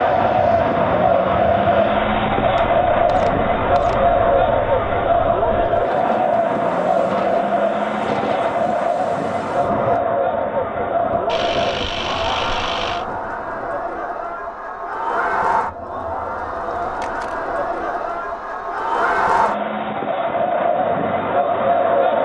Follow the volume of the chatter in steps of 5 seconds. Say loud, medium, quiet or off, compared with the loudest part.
loud, loud, medium, medium, loud.